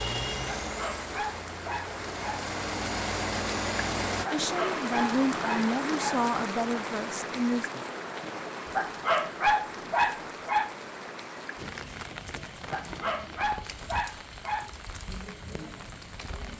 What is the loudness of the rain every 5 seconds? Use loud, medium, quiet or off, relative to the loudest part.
loud, loud, medium, medium.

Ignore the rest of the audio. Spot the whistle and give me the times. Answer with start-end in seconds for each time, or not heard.
not heard.